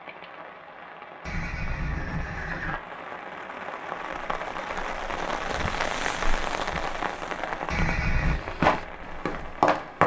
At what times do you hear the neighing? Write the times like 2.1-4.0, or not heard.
1.2-2.8, 7.7-8.4.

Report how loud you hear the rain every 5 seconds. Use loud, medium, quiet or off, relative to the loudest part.
medium, loud.